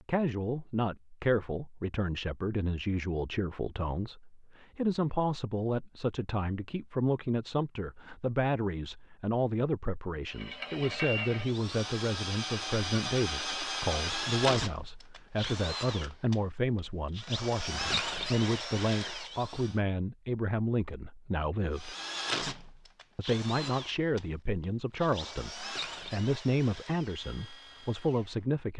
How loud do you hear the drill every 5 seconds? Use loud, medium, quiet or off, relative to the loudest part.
off, off, loud, loud, loud, medium.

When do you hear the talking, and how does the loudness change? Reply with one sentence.
The talking can be heard from 0.1 to 21.9 s, at a steady volume; and from 23.1 to 28.7 s, at a steady volume.